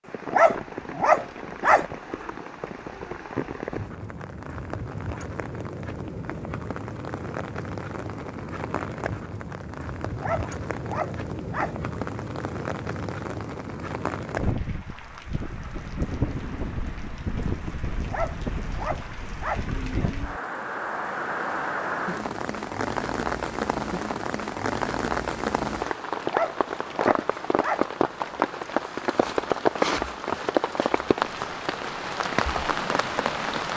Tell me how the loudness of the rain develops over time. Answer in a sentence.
The volume of the rain goes up.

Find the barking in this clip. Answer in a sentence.
The barking can be heard from 0.3 to 1.9 s, from 10.2 to 11.8 s, from 18.1 to 19.6 s and from 26.2 to 27.9 s.